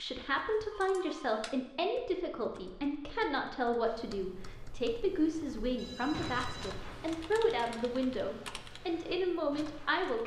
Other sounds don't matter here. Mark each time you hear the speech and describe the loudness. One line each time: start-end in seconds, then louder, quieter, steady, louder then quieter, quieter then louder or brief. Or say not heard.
0.0-10.2 steady.